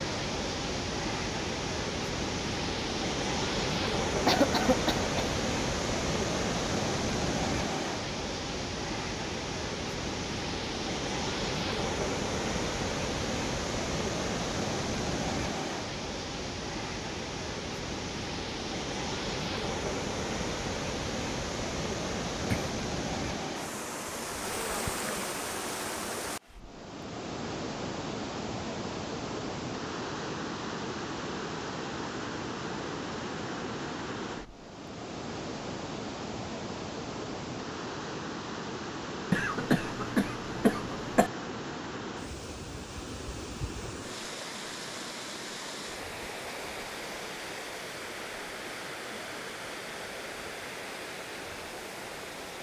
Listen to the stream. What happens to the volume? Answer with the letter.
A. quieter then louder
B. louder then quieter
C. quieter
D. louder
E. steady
C.